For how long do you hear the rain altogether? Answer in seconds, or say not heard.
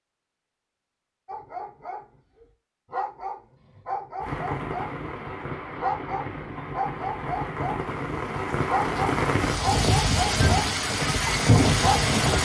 8 s.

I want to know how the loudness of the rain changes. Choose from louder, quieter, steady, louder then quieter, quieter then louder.
louder.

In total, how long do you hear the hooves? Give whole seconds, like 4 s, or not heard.
not heard.